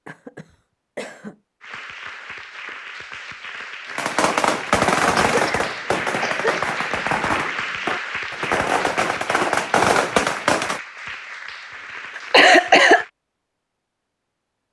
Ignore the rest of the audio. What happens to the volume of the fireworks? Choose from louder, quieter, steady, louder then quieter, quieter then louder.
quieter then louder.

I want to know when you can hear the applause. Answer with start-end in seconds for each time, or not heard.
1.6-13.1.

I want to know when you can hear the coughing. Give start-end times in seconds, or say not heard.
0.1-1.4, 5.3-6.8, 12.2-13.1.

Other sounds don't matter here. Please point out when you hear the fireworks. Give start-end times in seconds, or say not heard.
4.0-10.8.